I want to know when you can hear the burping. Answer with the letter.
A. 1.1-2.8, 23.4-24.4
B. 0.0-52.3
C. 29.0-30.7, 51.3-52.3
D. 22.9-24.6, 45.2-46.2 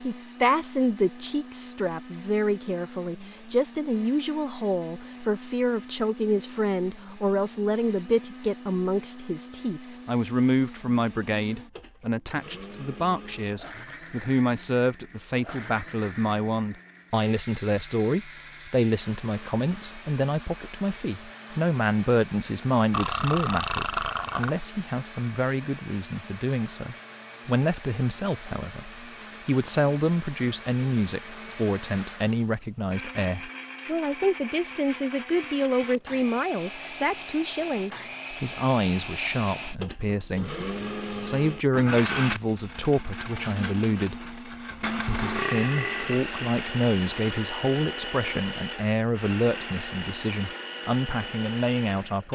D.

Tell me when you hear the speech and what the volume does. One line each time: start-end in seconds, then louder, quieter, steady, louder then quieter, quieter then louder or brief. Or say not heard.
0.0-52.3 steady.